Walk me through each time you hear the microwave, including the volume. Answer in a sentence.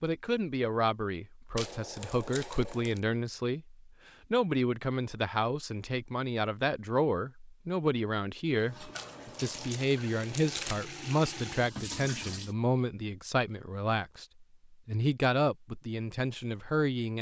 The microwave can't be heard in this clip.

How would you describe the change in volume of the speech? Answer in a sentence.
The loudness of the speech stays about the same.